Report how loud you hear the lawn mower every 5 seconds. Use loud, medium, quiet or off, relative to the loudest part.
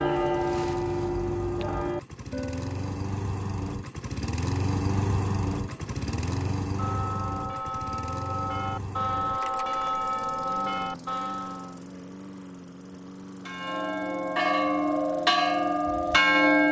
loud, loud, medium, medium.